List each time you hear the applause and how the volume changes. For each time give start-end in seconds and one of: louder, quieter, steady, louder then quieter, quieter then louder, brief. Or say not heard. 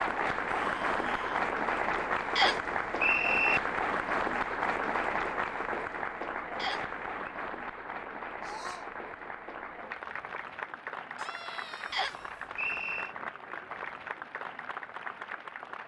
0.0-15.8 quieter.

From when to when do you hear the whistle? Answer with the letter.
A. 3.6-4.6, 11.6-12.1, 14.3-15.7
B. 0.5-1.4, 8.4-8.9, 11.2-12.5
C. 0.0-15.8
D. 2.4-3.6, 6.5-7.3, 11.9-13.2
D.